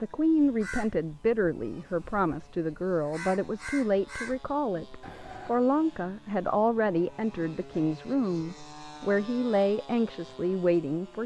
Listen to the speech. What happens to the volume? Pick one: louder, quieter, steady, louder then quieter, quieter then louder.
steady.